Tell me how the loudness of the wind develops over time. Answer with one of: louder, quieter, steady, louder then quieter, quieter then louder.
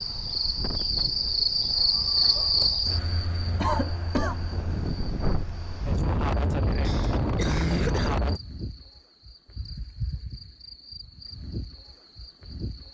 quieter then louder.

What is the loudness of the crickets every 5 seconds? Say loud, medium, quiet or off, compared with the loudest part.
loud, quiet, quiet.